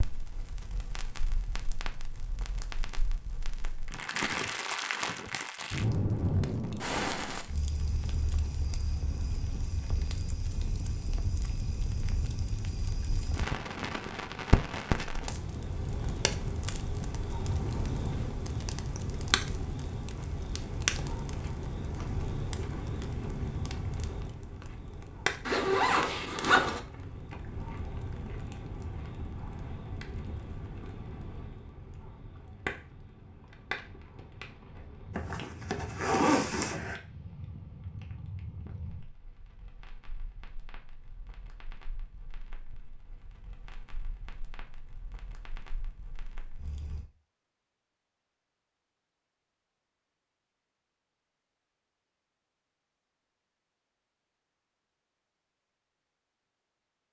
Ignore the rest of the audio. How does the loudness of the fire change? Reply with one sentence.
The loudness of the fire goes down.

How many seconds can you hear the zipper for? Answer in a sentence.
The zipper can be heard for 3 seconds in total.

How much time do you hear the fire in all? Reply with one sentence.
You can hear the fire for 47 seconds altogether.